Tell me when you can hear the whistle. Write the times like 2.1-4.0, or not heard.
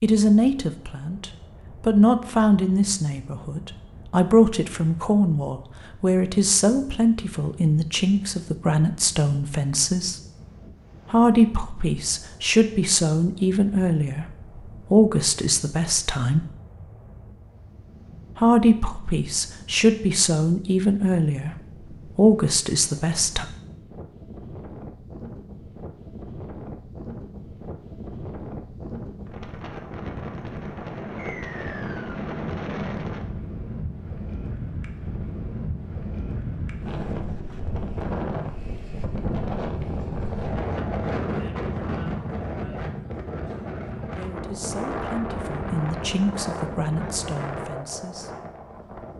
31.1-32.1.